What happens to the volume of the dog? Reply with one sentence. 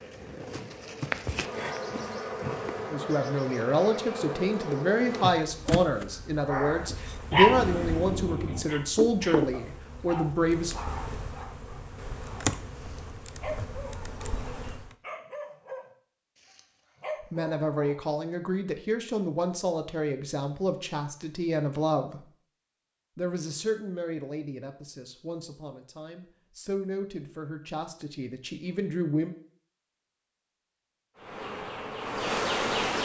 The loudness of the dog goes down.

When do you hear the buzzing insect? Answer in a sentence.
The buzzing insect can be heard from 0.0 to 14.9 s and from 31.1 to 33.0 s.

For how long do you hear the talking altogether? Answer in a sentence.
You can hear the talking for 19 seconds altogether.